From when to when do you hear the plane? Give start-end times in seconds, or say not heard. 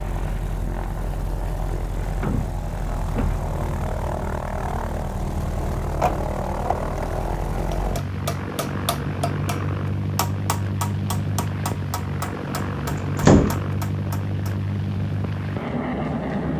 0.0-16.5.